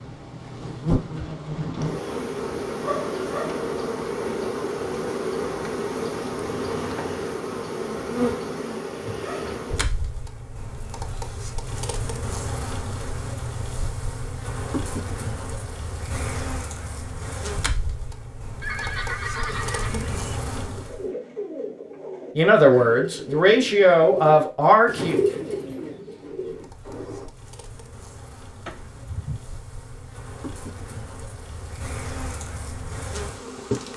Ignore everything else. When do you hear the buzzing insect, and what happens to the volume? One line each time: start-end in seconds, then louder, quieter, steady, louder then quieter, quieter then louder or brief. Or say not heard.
0.0-21.1 quieter
26.4-33.9 louder.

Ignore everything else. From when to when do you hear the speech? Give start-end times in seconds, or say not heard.
22.4-25.2.